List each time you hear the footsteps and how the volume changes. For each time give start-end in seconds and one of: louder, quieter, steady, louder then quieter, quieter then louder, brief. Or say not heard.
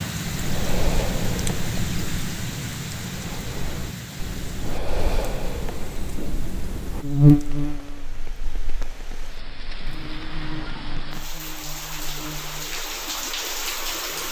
not heard.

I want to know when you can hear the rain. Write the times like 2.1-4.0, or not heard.
0.0-14.2.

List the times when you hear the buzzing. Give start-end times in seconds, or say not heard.
7.0-14.2.